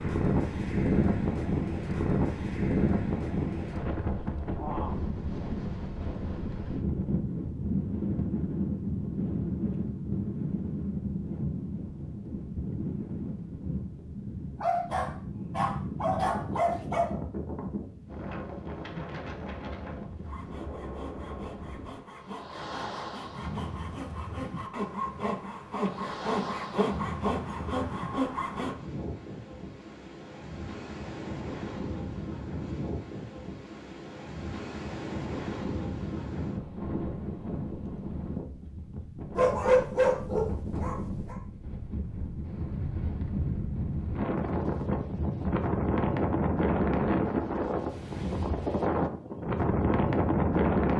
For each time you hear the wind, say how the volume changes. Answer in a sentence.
You can hear the wind from 0.0 to 50.9 s, getting quieter then louder.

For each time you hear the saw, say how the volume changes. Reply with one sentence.
You can hear the saw from 20.2 to 28.8 s, getting louder.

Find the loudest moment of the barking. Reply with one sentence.
The loudest moment of the barking is at 40 seconds.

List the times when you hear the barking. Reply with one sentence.
The barking can be heard from 14.6 to 17.1 s and from 39.4 to 41.4 s.